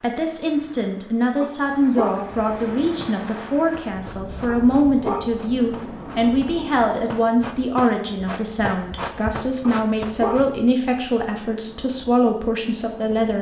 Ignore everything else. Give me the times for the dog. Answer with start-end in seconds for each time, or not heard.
1.4-2.2, 4.5-5.3, 9.6-10.4.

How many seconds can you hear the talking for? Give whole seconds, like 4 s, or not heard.
13 s.